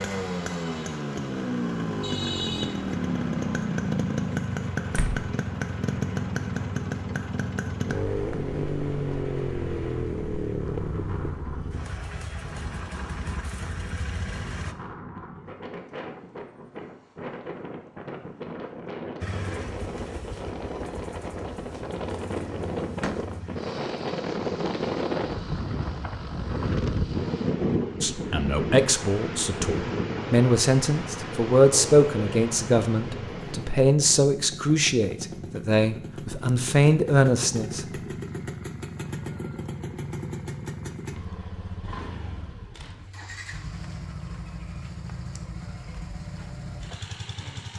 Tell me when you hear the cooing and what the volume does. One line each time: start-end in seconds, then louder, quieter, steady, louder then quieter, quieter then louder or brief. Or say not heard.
not heard.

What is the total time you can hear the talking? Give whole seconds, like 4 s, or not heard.
10 s.